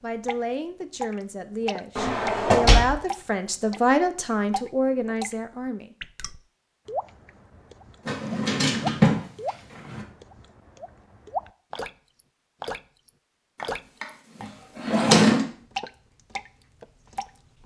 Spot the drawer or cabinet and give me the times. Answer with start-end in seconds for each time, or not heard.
1.9-3.0, 8.1-10.1, 13.6-15.4.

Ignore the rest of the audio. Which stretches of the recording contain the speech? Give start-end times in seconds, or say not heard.
0.0-6.0.